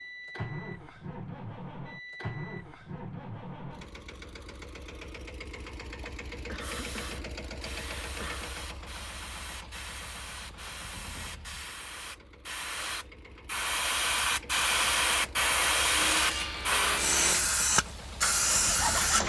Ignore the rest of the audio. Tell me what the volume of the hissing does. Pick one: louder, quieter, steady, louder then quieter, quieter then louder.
louder.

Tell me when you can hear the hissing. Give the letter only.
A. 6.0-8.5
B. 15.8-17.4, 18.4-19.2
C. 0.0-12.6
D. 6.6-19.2
D.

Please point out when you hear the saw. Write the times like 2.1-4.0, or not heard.
15.8-17.4, 18.4-19.2.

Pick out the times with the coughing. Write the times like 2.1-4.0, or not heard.
6.0-8.5.